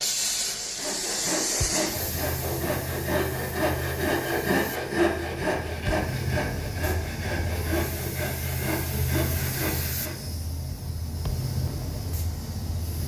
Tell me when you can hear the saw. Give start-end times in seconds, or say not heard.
0.6-10.2.